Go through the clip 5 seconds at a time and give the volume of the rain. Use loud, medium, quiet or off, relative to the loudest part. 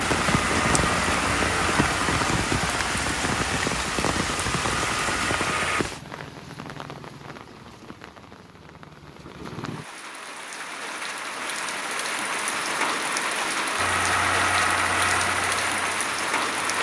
loud, medium, loud, loud.